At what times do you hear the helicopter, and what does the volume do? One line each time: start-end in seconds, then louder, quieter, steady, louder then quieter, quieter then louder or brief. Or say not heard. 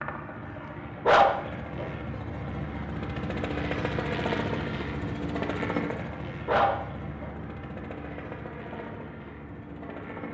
0.0-10.3 louder then quieter.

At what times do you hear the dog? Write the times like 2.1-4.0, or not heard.
1.1-1.9, 6.5-7.3.